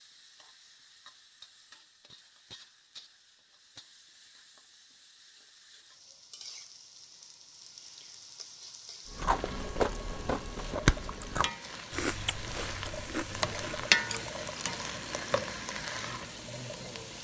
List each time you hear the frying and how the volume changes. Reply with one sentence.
You can hear the frying from 0.0 to 17.1 s, getting louder.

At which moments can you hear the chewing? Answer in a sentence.
You can hear the chewing from 9.1 to 14.7 s.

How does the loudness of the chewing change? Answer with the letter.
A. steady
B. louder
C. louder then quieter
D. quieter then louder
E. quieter
E.